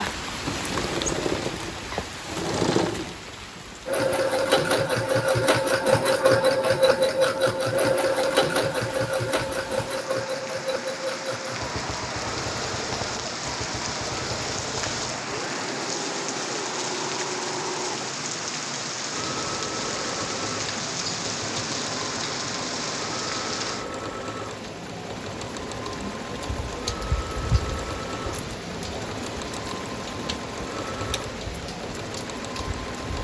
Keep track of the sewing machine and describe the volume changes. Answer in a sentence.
The volume of the sewing machine goes down.